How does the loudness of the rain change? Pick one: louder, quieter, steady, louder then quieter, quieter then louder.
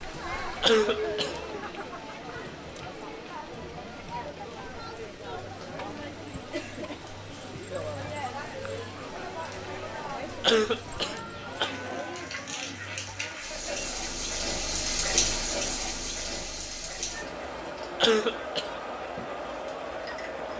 louder then quieter.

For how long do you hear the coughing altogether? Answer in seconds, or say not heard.
3 s.